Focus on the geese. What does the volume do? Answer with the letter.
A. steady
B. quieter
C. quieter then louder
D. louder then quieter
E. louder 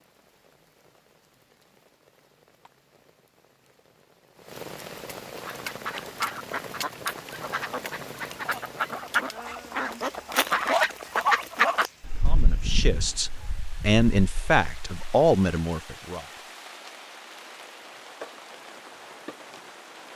D.